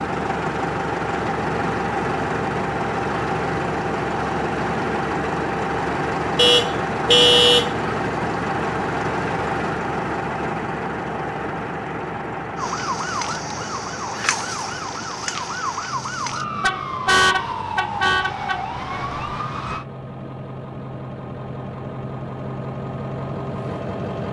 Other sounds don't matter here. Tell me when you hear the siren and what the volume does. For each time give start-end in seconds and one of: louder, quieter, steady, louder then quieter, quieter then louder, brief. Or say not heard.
12.6-19.9 steady.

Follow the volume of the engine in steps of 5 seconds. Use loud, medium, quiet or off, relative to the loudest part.
loud, loud, medium, quiet, medium.